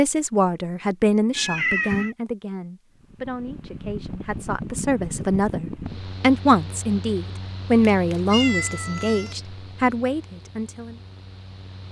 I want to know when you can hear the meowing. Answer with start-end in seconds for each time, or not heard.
1.4-2.1, 7.9-9.3.